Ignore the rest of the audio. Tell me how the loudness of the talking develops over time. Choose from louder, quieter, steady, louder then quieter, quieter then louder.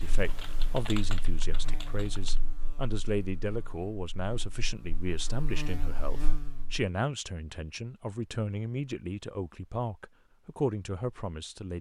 steady.